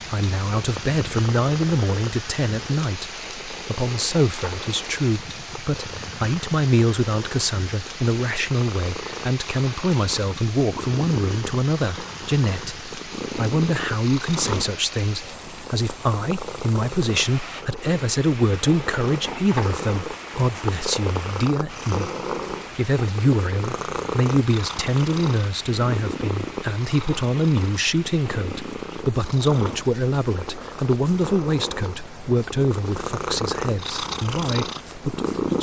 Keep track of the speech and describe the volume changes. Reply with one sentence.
The loudness of the speech stays about the same.